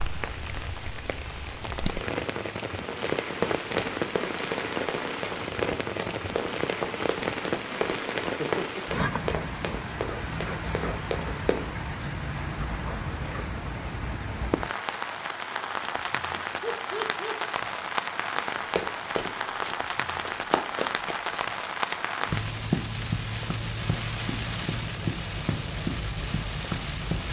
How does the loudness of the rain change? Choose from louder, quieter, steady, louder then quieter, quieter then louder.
steady.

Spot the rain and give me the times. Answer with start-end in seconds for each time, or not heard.
0.0-27.2.